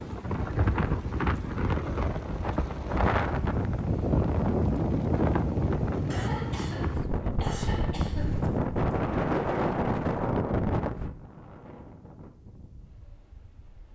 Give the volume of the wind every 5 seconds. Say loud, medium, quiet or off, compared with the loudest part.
loud, loud, medium.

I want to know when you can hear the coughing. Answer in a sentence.
The coughing can be heard from 6.1 to 8.4 s.